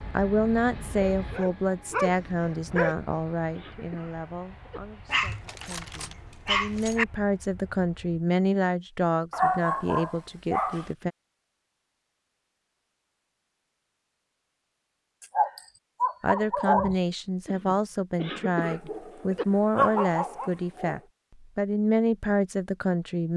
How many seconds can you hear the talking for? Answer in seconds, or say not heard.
18 s.